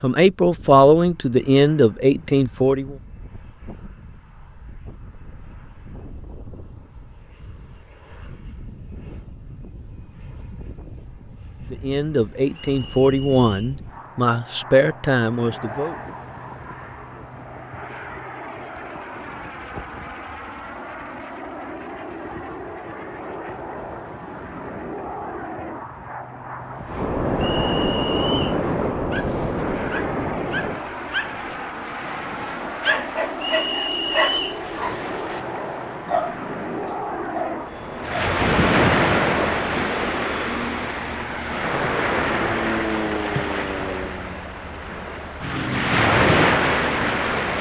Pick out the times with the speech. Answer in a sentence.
You can hear the speech from 0.0 to 3.0 s and from 11.7 to 15.9 s.